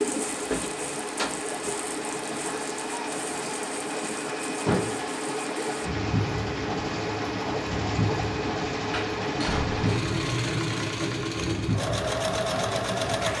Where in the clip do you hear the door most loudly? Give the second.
5 s.